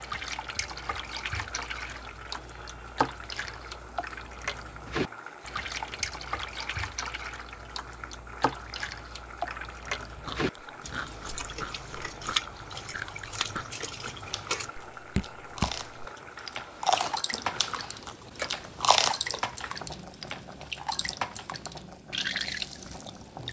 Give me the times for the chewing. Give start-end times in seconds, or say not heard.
10.2-19.8.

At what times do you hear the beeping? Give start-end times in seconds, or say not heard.
not heard.